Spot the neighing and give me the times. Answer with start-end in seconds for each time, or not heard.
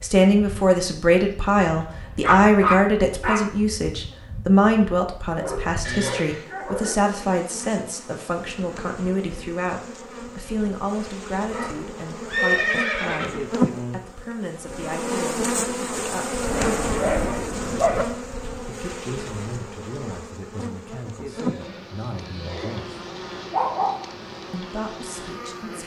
5.8-6.5, 12.2-13.5, 21.3-22.9.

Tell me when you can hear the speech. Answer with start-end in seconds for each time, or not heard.
0.0-16.4, 18.6-23.0, 24.5-25.8.